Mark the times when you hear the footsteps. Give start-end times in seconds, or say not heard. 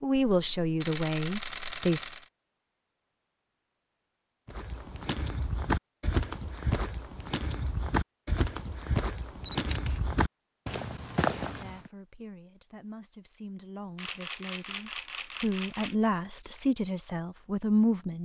4.5-11.9.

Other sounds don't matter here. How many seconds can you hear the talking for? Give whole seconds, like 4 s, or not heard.
9 s.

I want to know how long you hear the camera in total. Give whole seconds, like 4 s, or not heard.
5 s.